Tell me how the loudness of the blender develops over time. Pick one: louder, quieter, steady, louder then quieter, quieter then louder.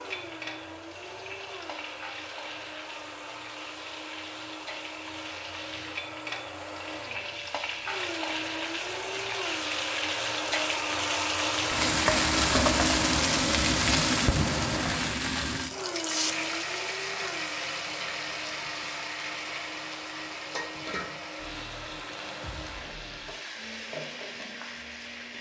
louder then quieter.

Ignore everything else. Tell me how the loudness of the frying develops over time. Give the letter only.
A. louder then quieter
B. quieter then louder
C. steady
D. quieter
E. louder
A.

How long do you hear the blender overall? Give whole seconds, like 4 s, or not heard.
25 s.